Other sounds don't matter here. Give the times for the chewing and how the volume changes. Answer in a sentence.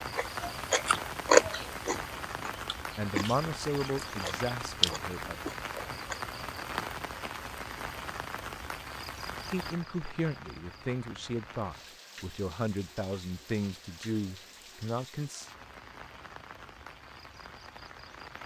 You can hear the chewing from 0.1 to 6.2 s, getting quieter then louder.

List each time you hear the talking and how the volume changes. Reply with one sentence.
You can hear the talking briefly from 3.0 to 5.3 s; and from 9.5 to 15.5 s, at a steady volume.